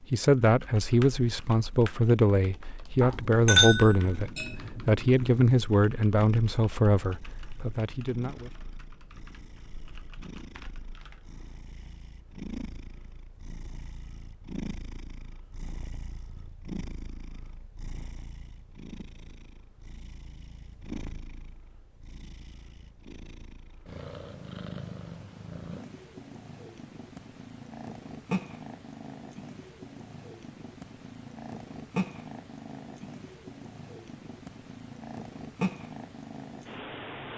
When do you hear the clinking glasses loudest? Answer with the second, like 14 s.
4 s.